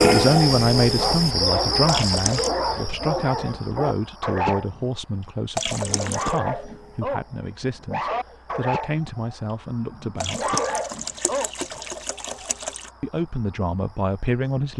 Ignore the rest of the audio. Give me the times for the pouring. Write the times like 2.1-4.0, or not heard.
1.9-2.5, 5.5-6.4, 10.2-12.9.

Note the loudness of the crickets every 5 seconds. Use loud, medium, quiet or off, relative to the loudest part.
loud, quiet, quiet.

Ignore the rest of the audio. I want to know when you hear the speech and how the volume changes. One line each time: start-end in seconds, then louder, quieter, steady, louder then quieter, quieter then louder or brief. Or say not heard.
0.0-10.6 quieter
13.0-14.7 brief.